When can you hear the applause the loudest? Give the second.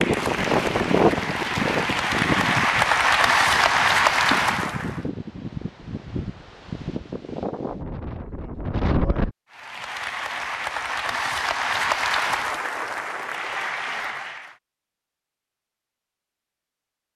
4 s.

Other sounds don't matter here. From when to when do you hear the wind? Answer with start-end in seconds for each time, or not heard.
0.0-9.3.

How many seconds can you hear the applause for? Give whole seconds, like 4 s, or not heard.
10 s.